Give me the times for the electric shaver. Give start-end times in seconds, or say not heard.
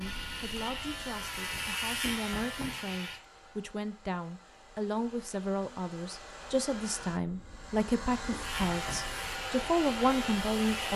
0.0-3.2, 8.4-10.9.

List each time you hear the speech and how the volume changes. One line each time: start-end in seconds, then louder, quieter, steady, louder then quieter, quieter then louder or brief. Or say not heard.
0.0-10.9 louder.